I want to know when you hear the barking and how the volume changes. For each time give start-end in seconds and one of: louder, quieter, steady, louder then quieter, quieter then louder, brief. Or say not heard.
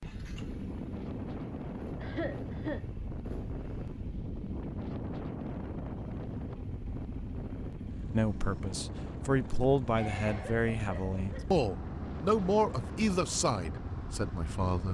not heard.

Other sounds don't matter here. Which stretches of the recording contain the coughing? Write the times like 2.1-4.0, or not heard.
2.0-2.9, 9.9-11.4.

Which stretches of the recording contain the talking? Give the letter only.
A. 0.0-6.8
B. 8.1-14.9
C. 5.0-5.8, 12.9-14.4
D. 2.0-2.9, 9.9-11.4
B.